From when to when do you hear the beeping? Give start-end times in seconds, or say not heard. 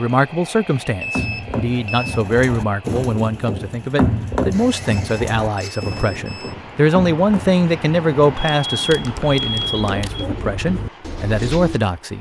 0.8-2.2, 4.5-6.5, 8.3-10.2.